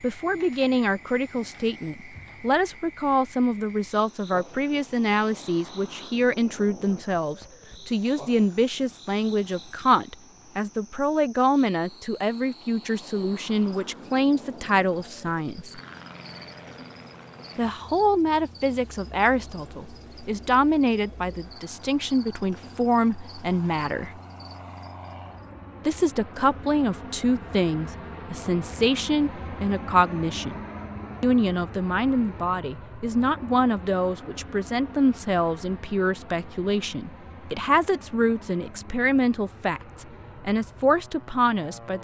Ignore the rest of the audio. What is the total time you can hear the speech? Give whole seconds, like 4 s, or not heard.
38 s.